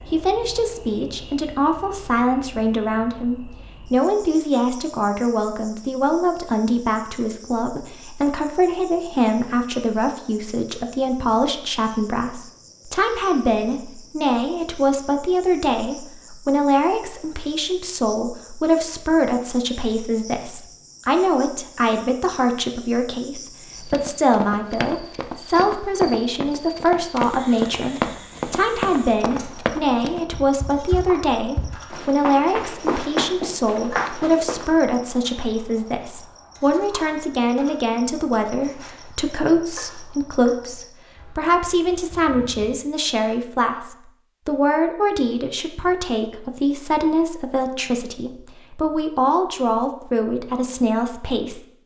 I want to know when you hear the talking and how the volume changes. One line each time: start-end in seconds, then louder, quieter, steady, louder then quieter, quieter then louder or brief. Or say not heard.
0.1-51.8 steady.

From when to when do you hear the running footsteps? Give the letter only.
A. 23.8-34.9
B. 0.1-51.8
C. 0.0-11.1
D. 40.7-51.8
A.